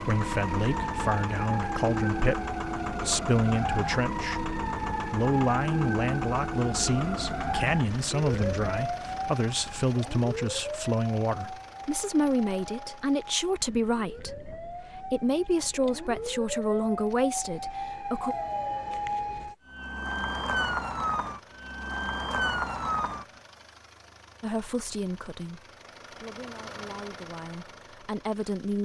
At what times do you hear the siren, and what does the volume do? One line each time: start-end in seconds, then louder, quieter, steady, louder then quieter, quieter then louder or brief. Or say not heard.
0.0-23.2 quieter then louder.